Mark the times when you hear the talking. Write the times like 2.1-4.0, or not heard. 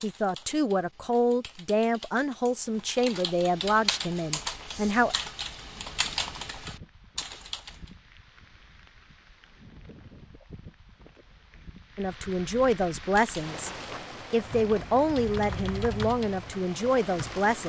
0.0-5.2, 11.9-13.7, 14.3-17.6.